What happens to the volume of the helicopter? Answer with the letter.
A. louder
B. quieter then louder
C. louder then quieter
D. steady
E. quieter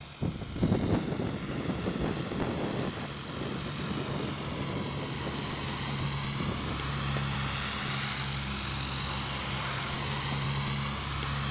A.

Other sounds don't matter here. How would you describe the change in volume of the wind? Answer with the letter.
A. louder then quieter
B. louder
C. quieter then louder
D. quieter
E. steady
D.